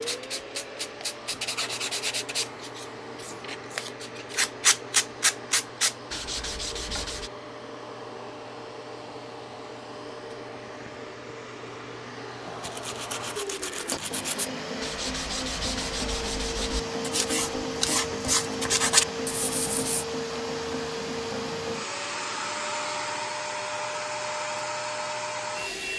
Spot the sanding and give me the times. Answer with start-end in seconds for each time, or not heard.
0.0-7.3, 12.6-20.1.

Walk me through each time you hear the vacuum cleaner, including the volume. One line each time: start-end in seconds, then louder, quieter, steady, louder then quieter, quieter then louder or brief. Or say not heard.
0.0-25.9 louder.